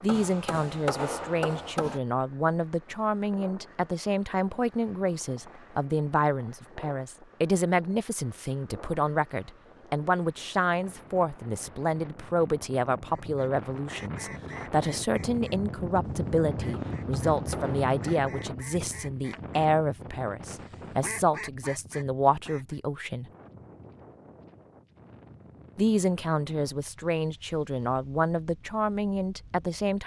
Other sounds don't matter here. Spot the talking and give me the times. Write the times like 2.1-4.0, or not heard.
0.0-23.3, 25.8-30.0.